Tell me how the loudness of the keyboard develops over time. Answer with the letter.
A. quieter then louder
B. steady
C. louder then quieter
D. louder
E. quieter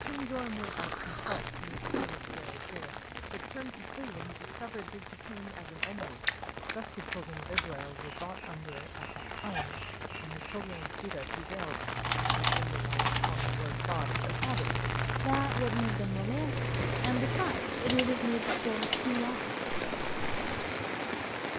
E.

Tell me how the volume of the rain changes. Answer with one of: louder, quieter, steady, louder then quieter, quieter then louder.
louder.